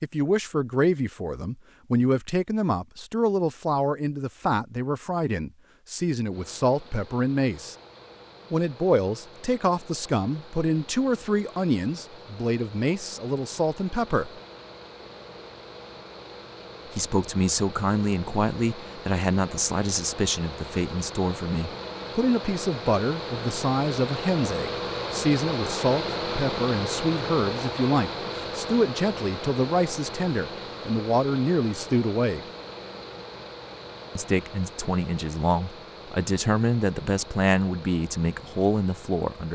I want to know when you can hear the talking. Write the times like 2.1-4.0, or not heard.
0.0-7.8, 8.5-14.3, 16.9-32.4, 34.1-39.5.